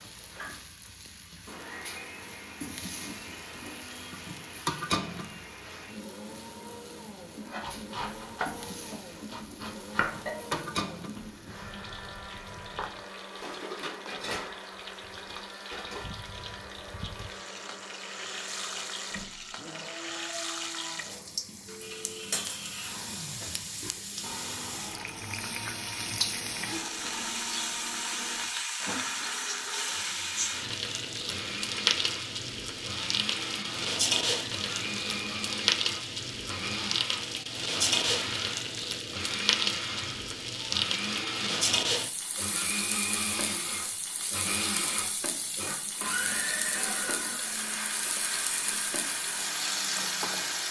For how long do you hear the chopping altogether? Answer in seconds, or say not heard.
6 s.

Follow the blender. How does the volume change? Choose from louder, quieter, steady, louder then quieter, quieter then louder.
louder.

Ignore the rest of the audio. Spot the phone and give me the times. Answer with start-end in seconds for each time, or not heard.
21.6-22.4.